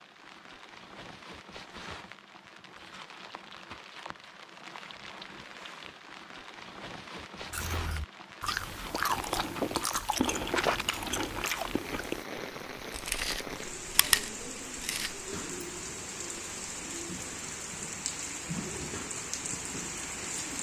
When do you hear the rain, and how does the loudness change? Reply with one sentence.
You can hear the rain from 0.0 to 20.5 s, getting louder.